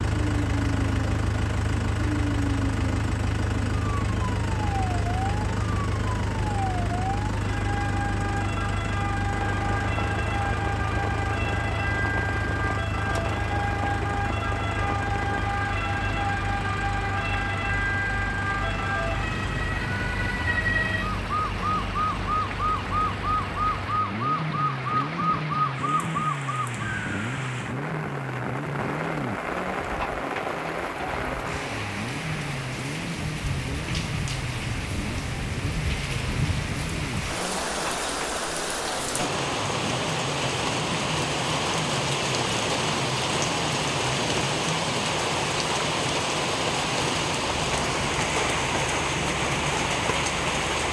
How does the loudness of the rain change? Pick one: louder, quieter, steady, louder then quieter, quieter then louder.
louder.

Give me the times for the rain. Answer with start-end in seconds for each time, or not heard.
9.3-50.8.